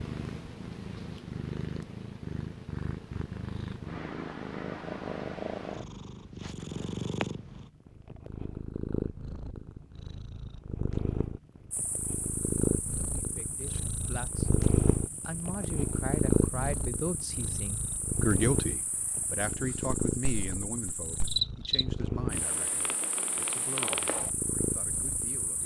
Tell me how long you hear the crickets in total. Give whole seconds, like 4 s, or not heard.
14 s.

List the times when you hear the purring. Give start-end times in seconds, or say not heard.
0.0-25.6.